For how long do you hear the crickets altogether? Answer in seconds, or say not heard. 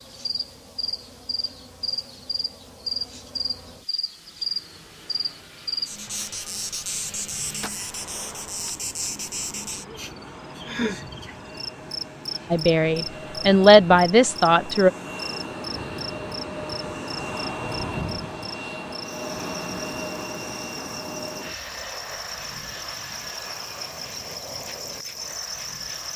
26 s.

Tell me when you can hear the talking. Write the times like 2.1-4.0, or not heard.
12.5-14.9.